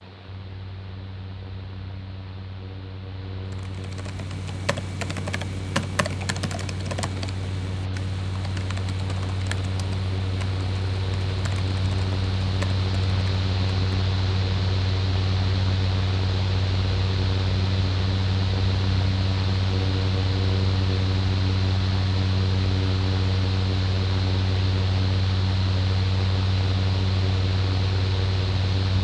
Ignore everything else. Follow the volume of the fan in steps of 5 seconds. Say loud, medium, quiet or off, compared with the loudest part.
quiet, medium, loud, loud, loud, loud.